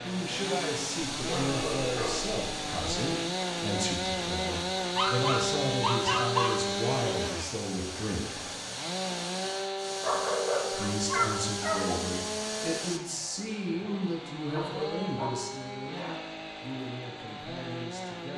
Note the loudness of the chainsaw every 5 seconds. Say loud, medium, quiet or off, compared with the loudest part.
loud, loud, medium, medium.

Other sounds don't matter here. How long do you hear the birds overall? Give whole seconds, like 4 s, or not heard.
not heard.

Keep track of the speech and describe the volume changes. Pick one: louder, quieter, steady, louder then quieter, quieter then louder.
quieter.